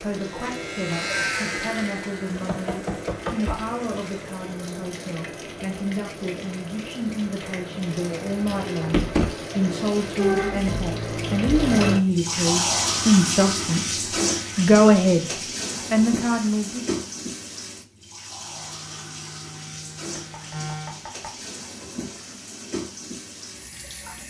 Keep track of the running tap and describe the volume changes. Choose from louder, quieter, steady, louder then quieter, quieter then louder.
louder then quieter.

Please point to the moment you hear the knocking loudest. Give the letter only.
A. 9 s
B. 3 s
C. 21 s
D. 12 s
A.